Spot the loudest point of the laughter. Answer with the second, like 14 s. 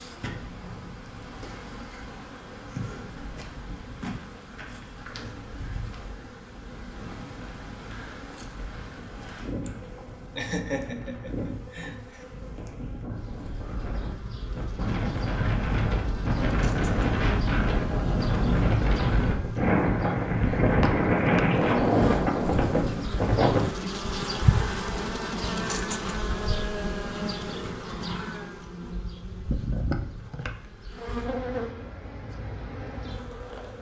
11 s.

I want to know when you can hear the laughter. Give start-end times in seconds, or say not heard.
9.7-12.2.